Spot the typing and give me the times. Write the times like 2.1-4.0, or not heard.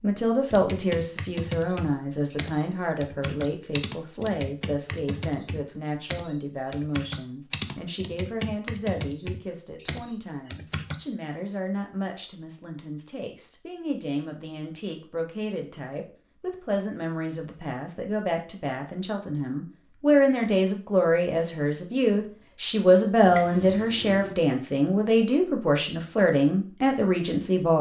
0.5-10.9.